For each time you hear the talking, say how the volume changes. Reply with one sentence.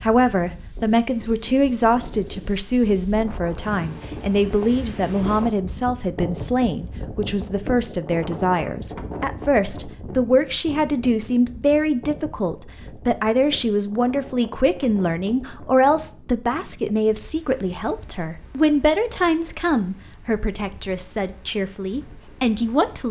You can hear the talking from 0.0 to 23.0 s, at a steady volume.